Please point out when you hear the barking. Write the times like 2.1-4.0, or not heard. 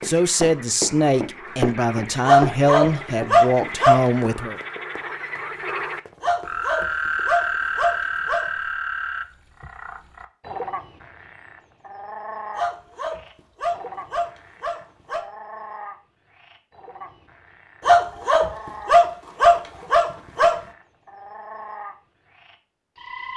2.2-4.0, 6.2-8.4, 12.6-15.2, 17.8-20.6.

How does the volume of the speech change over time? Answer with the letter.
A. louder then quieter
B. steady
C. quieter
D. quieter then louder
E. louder
B.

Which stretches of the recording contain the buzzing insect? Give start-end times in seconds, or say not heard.
not heard.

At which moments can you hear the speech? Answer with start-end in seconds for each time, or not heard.
0.0-4.6.